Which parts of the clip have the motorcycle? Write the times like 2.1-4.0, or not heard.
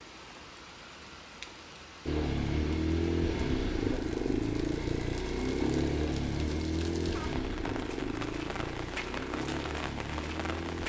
2.0-10.8.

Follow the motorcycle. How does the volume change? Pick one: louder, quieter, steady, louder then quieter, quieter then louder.
quieter.